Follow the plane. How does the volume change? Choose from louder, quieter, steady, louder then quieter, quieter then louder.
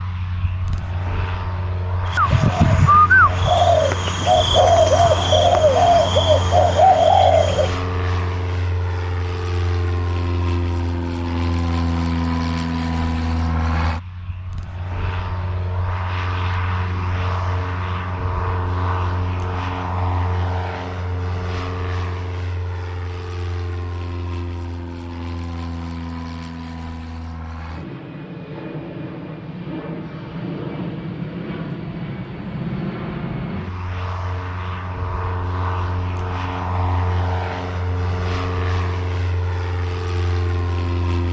steady.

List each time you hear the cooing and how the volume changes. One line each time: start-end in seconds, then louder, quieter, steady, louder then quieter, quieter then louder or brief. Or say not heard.
2.1-7.8 steady.